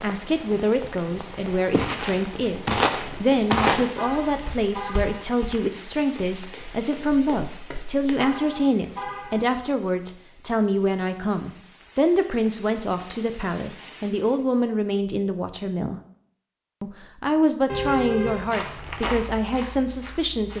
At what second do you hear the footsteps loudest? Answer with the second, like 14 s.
4 s.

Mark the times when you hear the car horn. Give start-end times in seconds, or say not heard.
4.0-5.2, 8.2-9.4, 17.6-18.6.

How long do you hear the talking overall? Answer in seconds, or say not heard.
20 s.